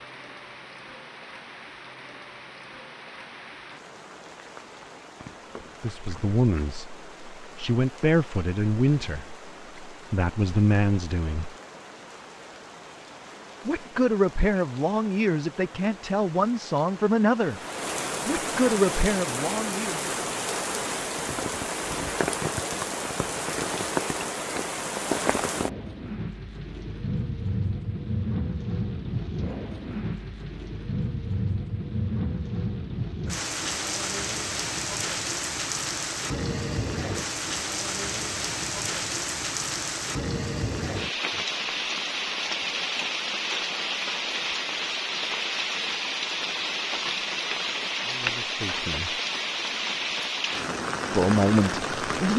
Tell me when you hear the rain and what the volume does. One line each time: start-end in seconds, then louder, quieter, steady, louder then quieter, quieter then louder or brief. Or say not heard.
0.0-52.3 louder.